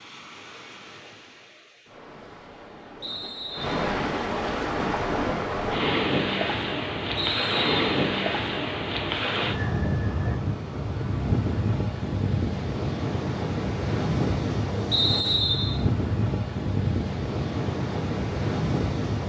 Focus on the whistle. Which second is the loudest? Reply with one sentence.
The loudest moment of the whistle is at 15 seconds.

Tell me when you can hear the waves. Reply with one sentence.
You can hear the waves from 0.0 to 19.2 s.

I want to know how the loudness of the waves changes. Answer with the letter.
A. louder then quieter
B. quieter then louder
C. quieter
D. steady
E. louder
E.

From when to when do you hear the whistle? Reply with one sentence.
You can hear the whistle from 3.0 to 3.8 s, from 7.2 to 8.0 s and from 14.9 to 15.8 s.